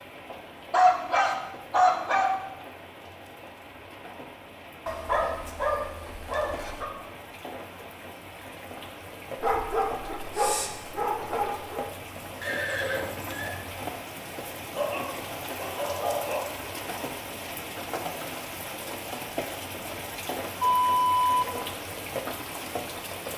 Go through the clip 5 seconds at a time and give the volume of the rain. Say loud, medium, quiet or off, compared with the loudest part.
medium, medium, loud, loud, loud.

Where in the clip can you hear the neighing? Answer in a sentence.
The neighing can be heard from 12.4 to 13.5 s.